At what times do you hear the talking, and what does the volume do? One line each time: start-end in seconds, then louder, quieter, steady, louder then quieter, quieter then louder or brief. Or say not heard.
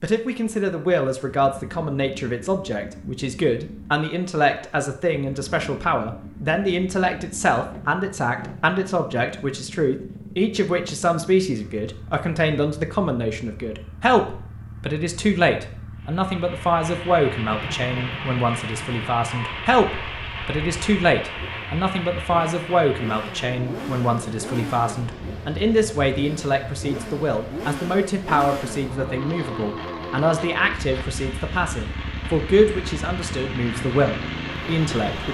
0.0-35.3 steady.